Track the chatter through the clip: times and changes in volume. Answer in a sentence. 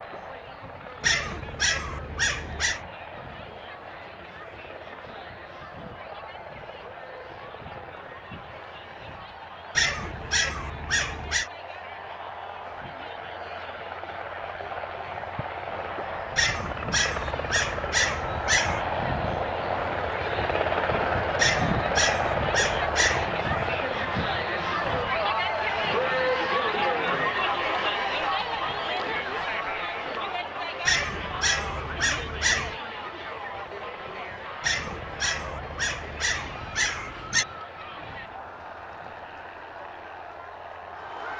You can hear the chatter from 0.0 to 41.3 s, getting louder then quieter.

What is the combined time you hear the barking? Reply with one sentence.
You can hear the barking for 13 seconds altogether.